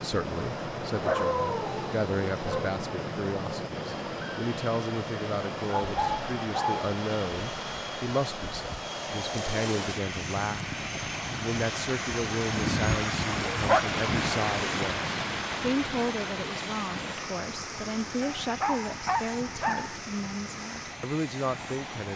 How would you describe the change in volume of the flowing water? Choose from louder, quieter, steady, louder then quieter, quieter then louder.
louder then quieter.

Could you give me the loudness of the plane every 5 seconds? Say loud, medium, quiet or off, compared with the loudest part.
loud, loud, loud, medium, medium.